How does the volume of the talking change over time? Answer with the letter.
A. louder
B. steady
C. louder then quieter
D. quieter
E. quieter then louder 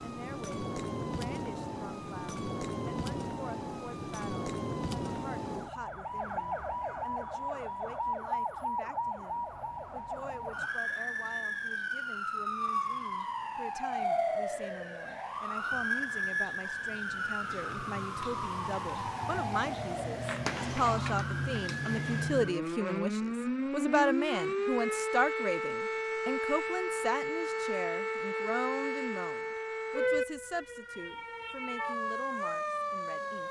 C.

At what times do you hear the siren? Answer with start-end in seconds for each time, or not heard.
0.0-33.4.